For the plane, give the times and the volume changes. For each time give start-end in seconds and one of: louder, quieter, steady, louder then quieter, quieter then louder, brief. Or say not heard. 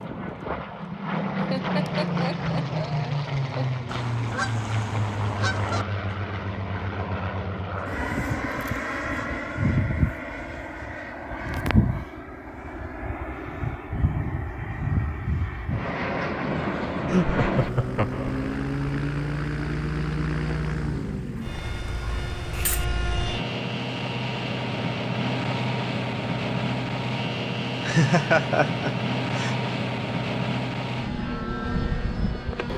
0.0-32.7 steady.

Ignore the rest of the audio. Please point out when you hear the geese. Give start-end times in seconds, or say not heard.
3.9-5.8, 21.4-22.9.